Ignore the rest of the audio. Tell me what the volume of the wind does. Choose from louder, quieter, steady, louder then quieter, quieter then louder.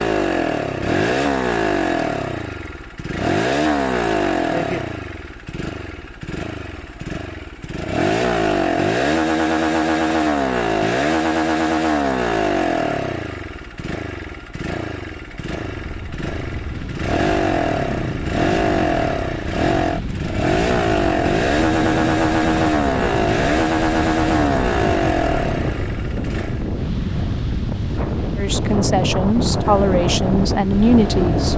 louder.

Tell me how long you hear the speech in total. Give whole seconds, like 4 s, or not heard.
3 s.